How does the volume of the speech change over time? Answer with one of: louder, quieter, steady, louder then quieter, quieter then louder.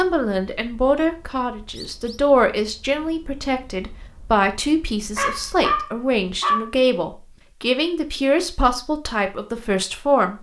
steady.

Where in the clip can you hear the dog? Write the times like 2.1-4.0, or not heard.
5.2-6.7.